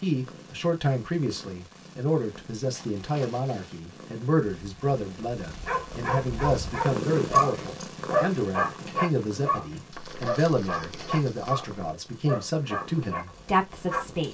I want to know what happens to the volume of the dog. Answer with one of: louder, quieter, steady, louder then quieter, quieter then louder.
quieter.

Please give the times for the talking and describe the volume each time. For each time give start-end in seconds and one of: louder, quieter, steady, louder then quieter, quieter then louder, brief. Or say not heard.
0.0-14.3 steady.